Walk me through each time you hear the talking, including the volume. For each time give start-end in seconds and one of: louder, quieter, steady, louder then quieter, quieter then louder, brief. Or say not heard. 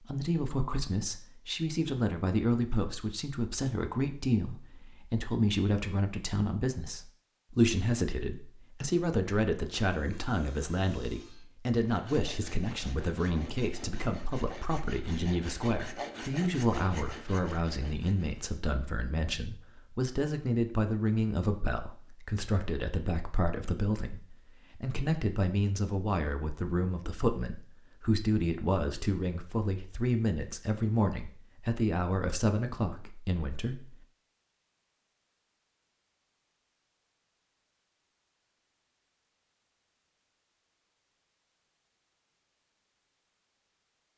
0.0-34.0 steady.